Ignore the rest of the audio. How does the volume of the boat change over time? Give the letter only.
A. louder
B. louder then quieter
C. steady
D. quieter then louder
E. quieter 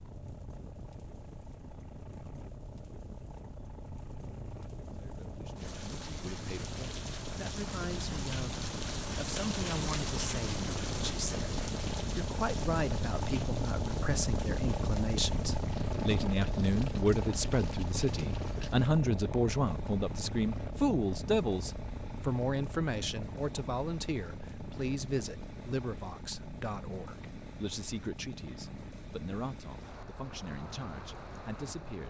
B.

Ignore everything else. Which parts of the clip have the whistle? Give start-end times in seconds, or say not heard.
not heard.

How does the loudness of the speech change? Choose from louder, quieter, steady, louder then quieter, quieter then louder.
louder then quieter.